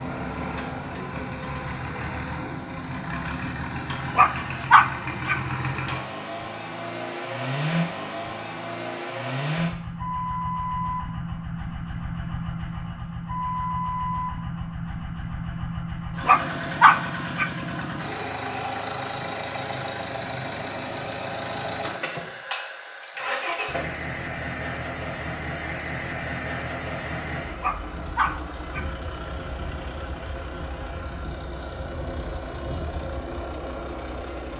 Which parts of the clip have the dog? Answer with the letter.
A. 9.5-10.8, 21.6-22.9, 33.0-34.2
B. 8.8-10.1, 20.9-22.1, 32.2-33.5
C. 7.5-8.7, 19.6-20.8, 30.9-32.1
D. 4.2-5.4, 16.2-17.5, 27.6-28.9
D.